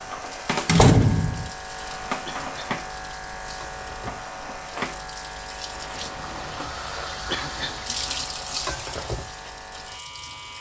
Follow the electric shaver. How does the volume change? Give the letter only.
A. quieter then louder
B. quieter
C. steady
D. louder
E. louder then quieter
B.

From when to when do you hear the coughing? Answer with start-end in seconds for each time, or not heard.
2.2-2.8, 7.3-7.8.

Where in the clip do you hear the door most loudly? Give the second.
1 s.